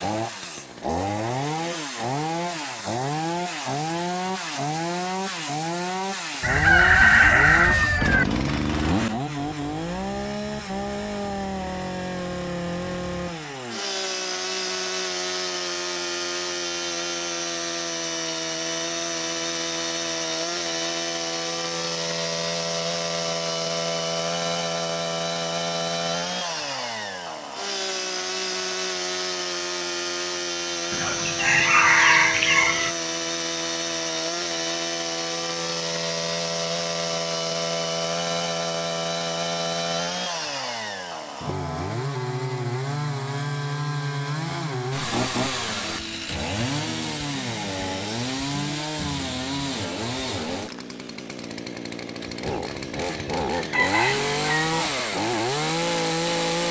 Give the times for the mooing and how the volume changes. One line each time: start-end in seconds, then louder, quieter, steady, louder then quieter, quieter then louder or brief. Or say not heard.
not heard.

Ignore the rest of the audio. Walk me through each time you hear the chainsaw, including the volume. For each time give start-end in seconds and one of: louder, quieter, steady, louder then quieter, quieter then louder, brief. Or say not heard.
0.0-56.6 steady.